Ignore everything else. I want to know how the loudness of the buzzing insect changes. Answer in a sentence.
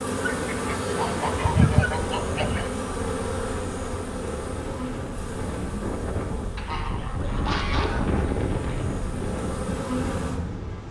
The volume of the buzzing insect goes down, then up.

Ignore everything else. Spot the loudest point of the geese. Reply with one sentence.
The loudest moment of the geese is at 2 seconds.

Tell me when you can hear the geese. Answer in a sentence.
You can hear the geese from 0.3 to 2.7 s and from 6.5 to 8.2 s.